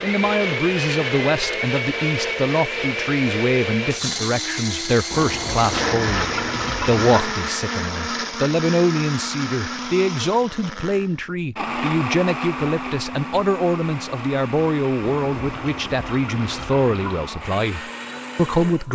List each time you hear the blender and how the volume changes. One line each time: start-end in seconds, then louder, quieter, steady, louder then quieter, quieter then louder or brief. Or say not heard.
0.0-18.8 quieter.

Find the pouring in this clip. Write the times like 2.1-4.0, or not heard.
5.1-7.3, 15.0-17.3.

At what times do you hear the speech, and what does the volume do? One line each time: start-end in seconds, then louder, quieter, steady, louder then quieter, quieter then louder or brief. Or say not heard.
0.0-18.8 steady.